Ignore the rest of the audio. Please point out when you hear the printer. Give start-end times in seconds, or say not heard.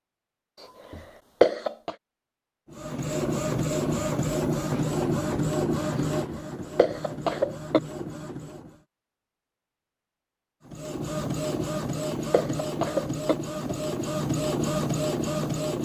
2.7-8.8, 10.7-15.8.